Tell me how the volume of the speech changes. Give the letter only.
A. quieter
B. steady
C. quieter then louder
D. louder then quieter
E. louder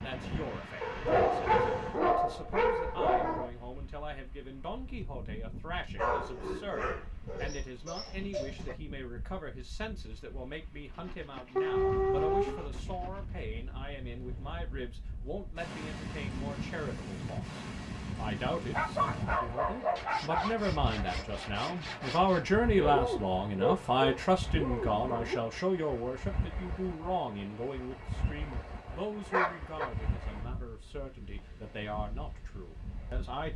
D.